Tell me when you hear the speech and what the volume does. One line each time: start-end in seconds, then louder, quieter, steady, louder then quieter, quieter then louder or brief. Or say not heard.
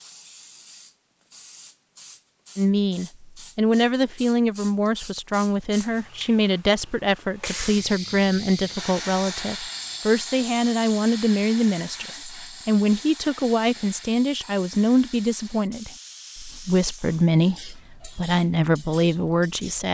2.5-19.9 steady.